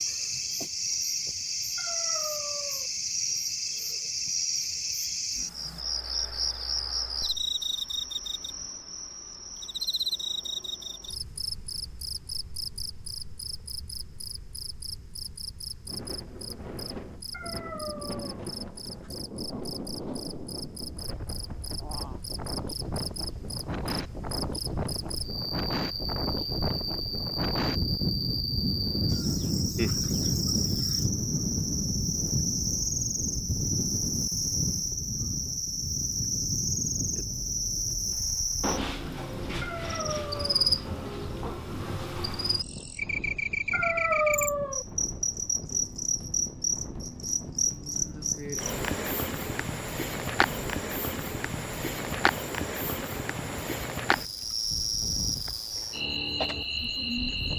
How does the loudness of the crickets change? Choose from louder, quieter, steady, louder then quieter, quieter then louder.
quieter then louder.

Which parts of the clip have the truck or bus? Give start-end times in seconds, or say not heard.
not heard.